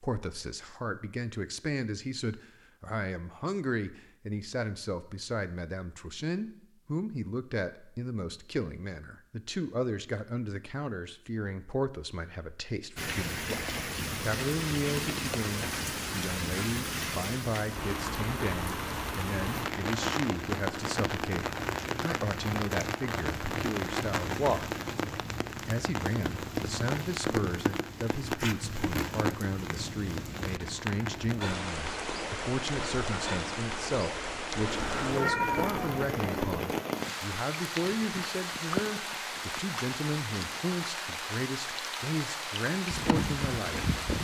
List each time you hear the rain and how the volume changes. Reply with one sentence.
You can hear the rain from 12.9 to 44.1 s, at a steady volume.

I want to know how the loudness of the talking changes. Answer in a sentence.
The volume of the talking stays about the same.